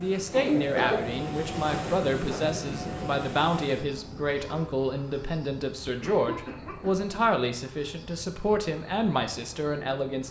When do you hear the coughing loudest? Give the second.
1 s.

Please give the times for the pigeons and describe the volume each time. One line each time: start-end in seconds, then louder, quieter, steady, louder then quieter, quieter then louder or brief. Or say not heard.
not heard.